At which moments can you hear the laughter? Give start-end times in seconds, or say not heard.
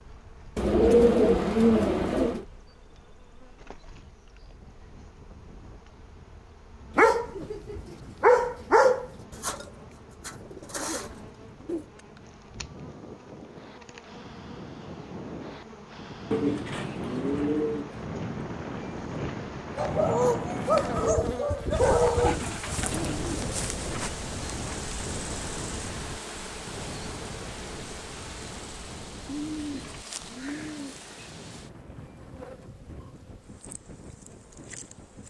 not heard.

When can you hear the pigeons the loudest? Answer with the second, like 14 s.
1 s.